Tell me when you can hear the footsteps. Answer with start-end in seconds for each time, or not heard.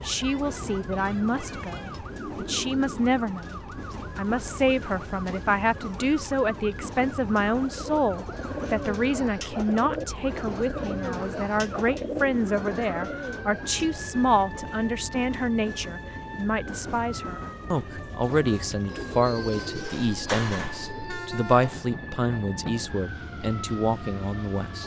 not heard.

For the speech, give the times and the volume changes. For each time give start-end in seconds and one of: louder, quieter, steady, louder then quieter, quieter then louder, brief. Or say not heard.
0.0-24.8 steady.